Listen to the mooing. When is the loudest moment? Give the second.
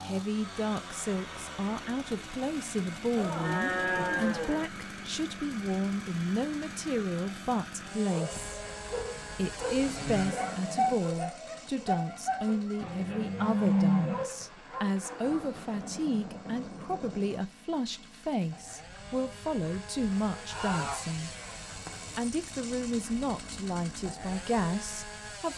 14 s.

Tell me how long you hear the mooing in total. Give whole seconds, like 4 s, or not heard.
7 s.